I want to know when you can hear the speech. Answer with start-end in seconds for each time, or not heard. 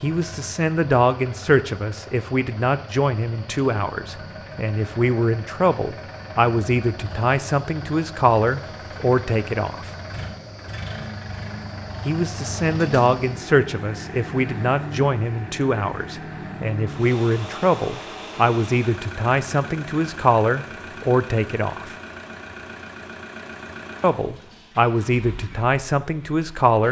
0.0-9.9, 12.1-21.9, 24.0-26.8.